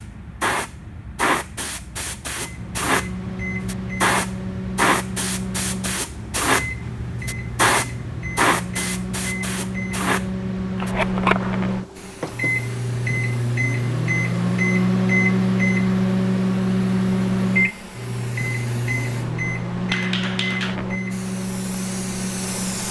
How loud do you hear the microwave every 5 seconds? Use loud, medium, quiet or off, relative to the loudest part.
medium, medium, loud, loud, medium.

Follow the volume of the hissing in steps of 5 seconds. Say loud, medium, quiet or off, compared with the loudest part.
loud, loud, loud, medium, medium.